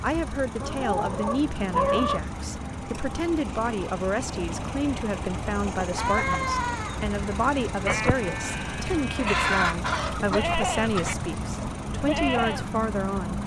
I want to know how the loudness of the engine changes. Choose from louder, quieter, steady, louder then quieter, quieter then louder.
steady.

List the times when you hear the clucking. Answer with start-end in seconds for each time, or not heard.
0.6-2.3, 5.5-7.0, 9.2-11.2.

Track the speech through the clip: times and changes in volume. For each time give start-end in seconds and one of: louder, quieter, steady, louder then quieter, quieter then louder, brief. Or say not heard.
0.0-13.4 steady.